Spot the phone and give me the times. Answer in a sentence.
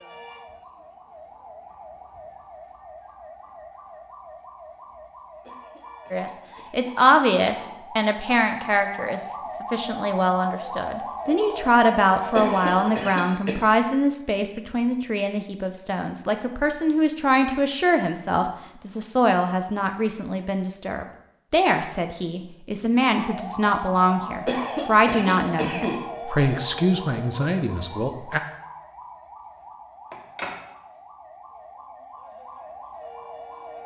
The phone can be heard from 30.1 to 30.6 s.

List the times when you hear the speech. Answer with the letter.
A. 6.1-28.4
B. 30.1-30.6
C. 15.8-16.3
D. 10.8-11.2
A.